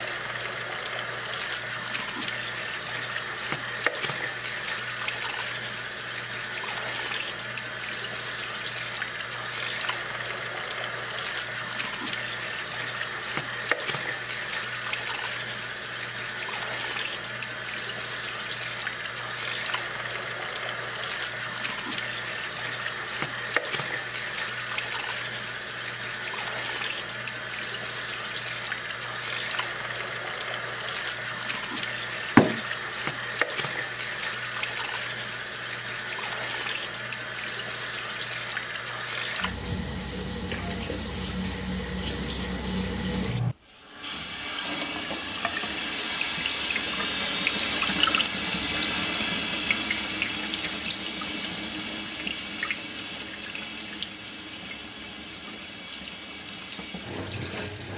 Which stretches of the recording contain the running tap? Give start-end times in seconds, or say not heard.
0.0-57.9.